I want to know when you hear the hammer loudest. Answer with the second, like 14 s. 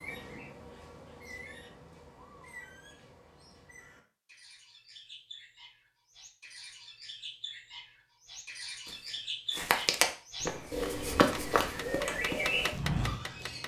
13 s.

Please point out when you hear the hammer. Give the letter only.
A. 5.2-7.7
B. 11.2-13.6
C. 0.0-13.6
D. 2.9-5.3
B.